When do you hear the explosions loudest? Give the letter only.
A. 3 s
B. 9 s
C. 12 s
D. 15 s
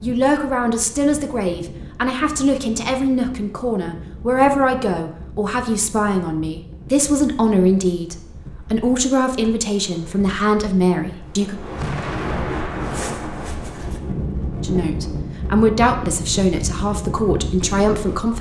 C.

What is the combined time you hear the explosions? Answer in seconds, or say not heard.
2 s.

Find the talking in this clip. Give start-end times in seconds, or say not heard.
0.0-11.6, 14.6-18.3.